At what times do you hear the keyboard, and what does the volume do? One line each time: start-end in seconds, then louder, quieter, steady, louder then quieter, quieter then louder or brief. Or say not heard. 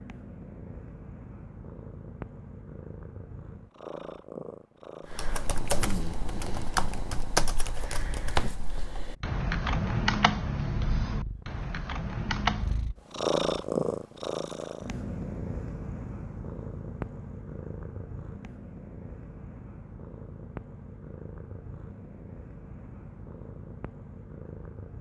5.1-12.9 steady.